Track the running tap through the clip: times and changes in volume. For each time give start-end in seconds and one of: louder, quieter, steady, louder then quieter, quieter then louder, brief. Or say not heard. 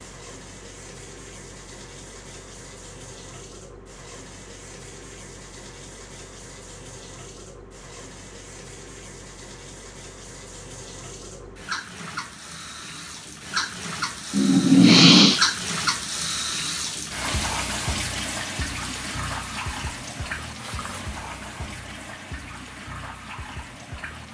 0.0-24.2 louder then quieter.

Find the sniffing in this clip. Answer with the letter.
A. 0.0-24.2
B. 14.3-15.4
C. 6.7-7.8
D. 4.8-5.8
B.